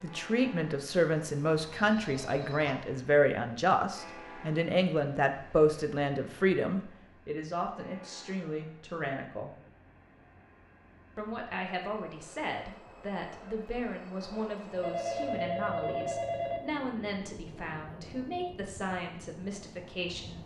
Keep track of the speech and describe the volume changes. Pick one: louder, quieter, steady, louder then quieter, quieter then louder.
quieter.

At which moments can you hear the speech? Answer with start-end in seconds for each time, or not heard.
0.0-9.6, 11.2-20.4.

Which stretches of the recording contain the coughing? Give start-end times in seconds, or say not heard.
not heard.